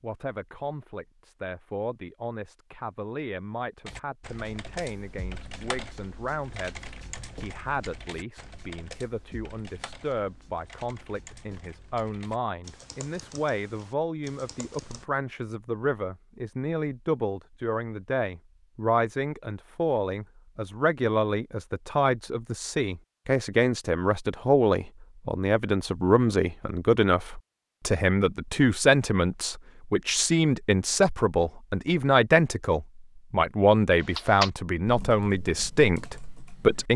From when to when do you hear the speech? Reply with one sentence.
The speech can be heard from 0.0 to 36.9 s.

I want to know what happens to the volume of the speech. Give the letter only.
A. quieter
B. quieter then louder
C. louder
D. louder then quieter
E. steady
C.